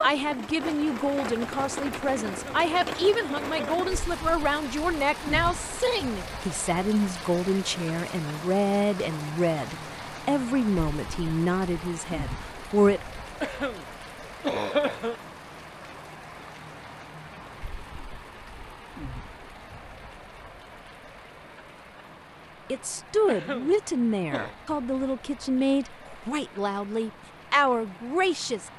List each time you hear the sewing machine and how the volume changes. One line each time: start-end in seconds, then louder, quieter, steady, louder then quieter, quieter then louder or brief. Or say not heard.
not heard.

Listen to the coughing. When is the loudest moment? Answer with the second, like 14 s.
15 s.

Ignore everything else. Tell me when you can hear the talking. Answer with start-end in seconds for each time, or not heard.
0.0-13.2, 22.7-28.7.